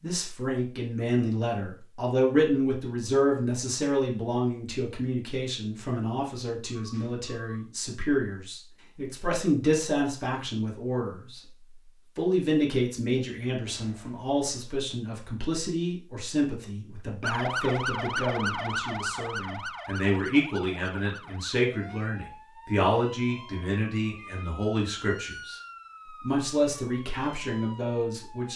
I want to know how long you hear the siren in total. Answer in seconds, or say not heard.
11 s.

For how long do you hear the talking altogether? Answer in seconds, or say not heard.
27 s.